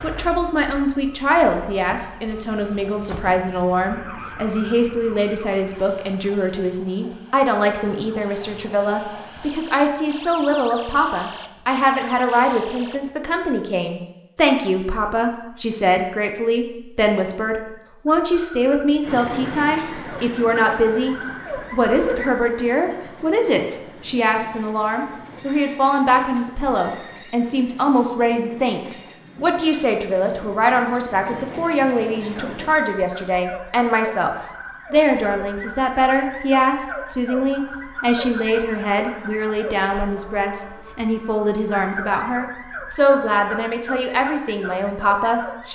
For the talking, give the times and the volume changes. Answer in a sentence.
You can hear the talking from 0.0 to 45.7 s, at a steady volume.